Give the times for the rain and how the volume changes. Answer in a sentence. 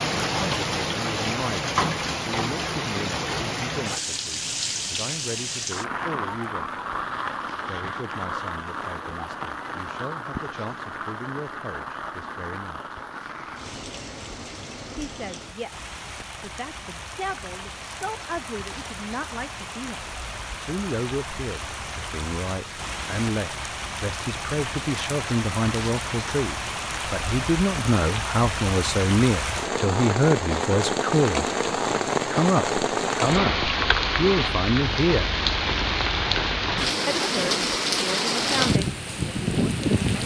The rain can be heard from 0.0 to 40.2 s, getting quieter then louder.